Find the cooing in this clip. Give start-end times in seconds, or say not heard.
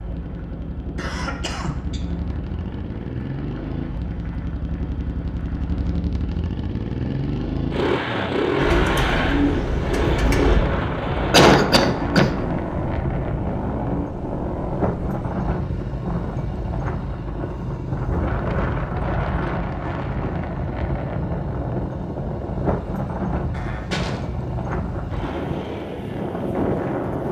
8.6-10.6.